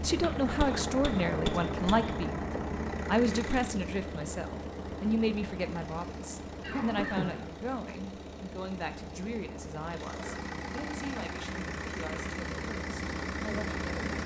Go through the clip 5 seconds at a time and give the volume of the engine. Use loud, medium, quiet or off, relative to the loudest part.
loud, medium, loud.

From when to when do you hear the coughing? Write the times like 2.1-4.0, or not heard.
6.6-7.5.